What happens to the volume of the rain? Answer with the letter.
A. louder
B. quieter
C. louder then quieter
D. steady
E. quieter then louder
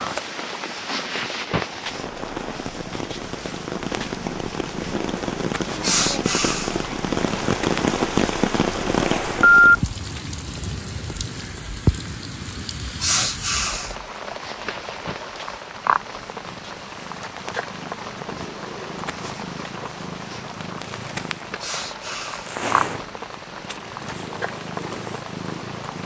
C.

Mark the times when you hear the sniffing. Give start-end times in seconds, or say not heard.
5.8-6.8, 13.0-13.9, 21.6-22.6.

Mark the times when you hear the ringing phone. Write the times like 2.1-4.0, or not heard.
9.2-9.8.